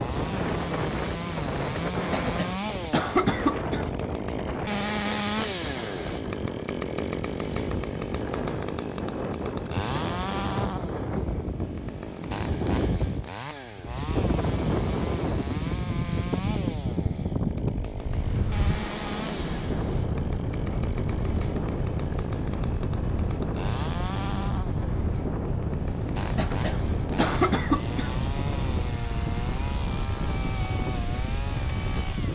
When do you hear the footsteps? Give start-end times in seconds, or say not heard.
not heard.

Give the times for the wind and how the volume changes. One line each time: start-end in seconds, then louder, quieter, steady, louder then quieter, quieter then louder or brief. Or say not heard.
0.0-32.3 steady.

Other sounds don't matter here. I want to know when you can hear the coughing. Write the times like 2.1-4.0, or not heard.
2.1-3.9, 26.4-28.1.